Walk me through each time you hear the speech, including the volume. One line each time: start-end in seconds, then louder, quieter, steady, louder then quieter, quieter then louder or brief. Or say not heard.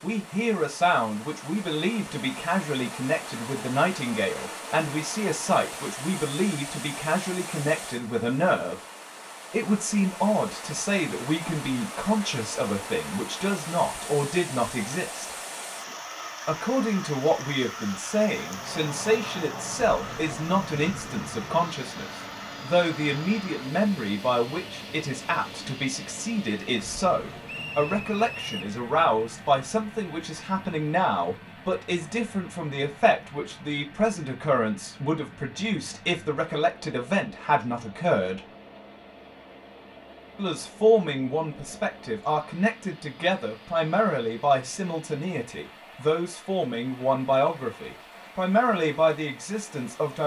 0.0-8.8 steady
9.5-15.3 steady
16.4-38.4 steady
40.4-50.2 steady.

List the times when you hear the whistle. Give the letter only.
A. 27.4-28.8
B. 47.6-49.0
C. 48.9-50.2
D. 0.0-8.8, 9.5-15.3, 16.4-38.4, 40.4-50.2
A.